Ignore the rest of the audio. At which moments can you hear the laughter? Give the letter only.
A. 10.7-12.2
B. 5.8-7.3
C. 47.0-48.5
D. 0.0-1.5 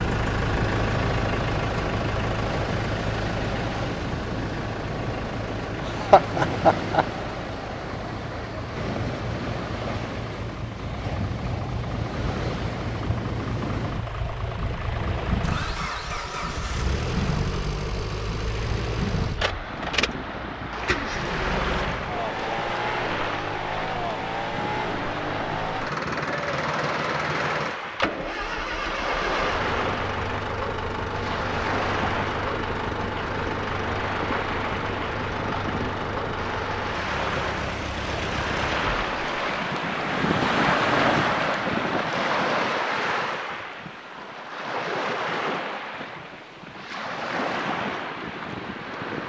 B.